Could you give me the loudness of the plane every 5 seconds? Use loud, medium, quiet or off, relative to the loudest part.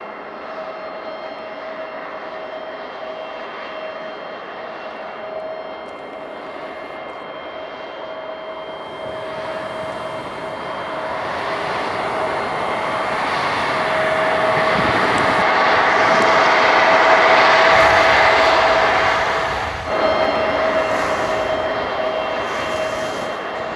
quiet, quiet, medium, loud, medium.